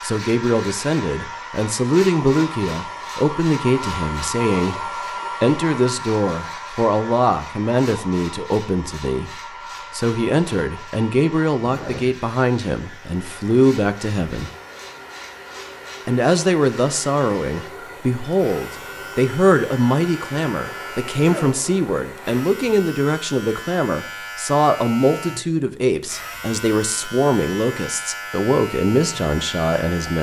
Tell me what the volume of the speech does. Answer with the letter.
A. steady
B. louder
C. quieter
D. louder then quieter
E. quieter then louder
A.